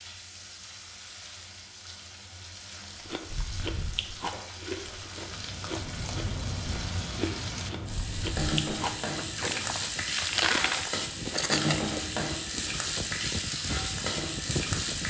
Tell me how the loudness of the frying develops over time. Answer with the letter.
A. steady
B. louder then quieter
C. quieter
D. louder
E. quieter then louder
D.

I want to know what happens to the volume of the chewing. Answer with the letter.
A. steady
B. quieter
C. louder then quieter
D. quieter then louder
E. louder
E.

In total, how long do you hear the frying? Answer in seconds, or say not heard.
15 s.